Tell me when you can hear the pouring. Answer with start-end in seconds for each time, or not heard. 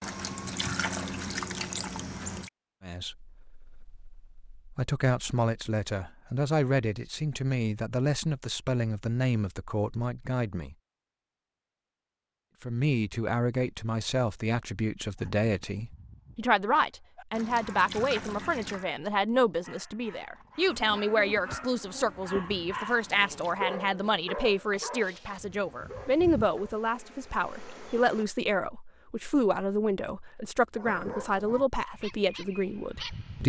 0.0-2.5, 17.3-18.9, 22.9-23.6.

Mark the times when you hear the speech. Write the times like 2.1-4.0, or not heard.
2.8-10.8, 12.6-33.4.